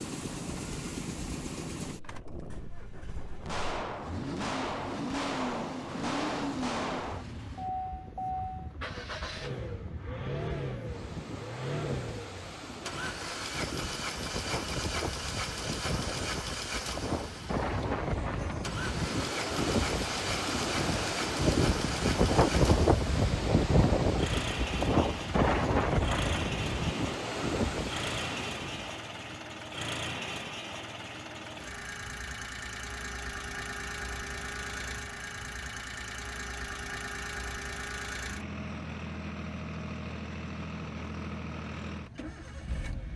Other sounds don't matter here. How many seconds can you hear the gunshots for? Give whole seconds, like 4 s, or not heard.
4 s.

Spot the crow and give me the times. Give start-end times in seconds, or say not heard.
not heard.